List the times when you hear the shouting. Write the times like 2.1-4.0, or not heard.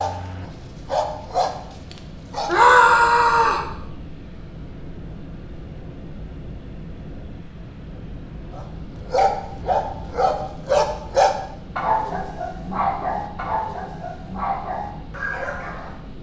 2.5-3.6.